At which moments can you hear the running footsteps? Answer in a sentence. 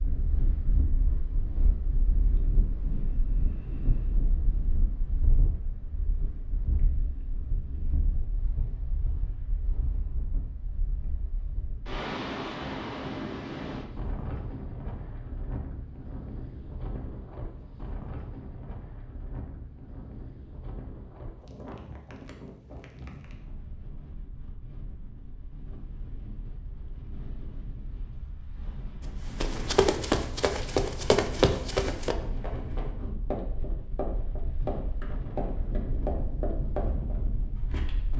The running footsteps can be heard from 29.4 to 38.1 s.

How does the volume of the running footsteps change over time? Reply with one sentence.
The loudness of the running footsteps goes down.